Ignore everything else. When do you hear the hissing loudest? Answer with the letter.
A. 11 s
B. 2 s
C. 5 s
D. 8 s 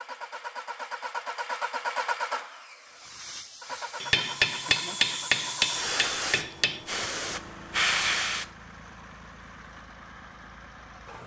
D.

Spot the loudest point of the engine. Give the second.
2 s.